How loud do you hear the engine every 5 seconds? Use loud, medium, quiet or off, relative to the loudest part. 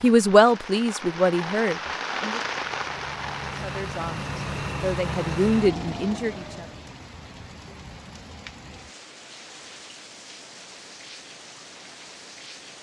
loud, loud, off.